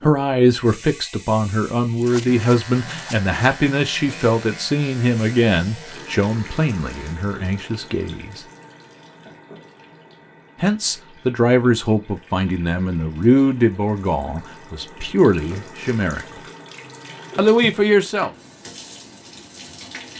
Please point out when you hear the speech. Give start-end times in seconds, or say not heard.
0.0-8.4, 10.6-16.2, 17.4-18.3.